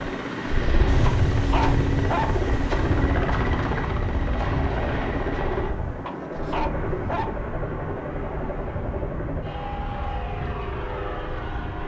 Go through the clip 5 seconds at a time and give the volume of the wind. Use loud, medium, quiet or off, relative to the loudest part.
loud, medium, medium.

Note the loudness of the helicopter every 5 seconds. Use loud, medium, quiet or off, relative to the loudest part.
loud, loud, medium.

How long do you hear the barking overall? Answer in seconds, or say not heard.
3 s.